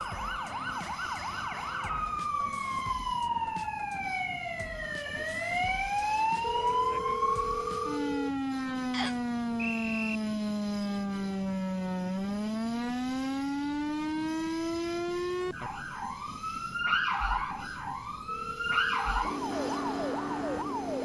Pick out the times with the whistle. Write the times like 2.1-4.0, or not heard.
8.9-10.2.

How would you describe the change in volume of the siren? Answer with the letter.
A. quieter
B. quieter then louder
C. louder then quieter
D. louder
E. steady
E.